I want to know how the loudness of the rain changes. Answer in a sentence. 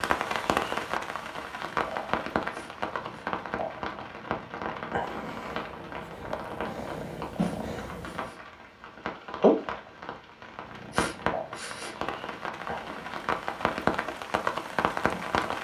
The volume of the rain goes down, then up.